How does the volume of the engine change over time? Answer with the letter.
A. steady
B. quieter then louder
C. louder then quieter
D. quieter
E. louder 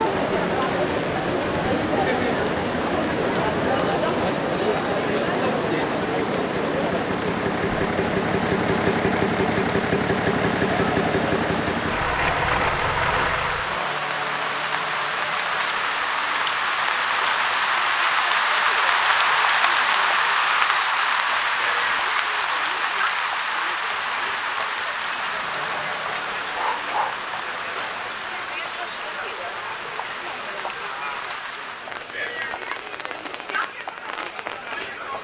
E.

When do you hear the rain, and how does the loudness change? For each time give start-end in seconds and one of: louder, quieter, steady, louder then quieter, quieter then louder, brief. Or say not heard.
0.0-35.1 louder then quieter.